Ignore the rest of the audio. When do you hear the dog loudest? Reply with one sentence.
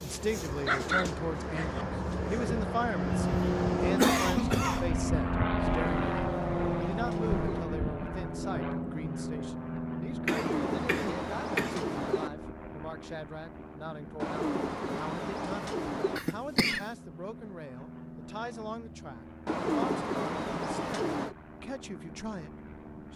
The volume of the dog peaks at 1 second.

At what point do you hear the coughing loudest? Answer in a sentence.
The volume of the coughing peaks at 4 seconds.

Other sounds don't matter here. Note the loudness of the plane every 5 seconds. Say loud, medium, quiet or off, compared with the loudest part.
loud, loud, medium, quiet, quiet.